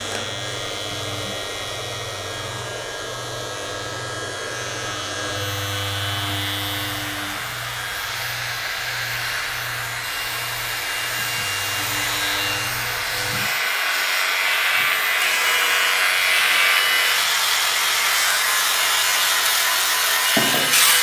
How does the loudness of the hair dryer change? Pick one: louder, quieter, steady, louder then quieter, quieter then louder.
louder.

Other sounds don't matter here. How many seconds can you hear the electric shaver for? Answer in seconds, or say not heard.
21 s.